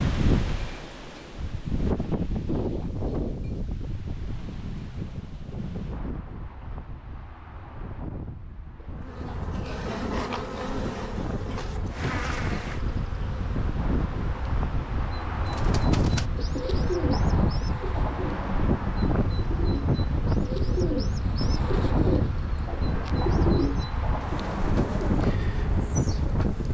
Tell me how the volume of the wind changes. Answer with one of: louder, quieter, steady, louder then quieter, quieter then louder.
quieter then louder.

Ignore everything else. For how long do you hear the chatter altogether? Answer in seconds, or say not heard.
not heard.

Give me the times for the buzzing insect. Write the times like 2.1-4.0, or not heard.
9.0-26.7.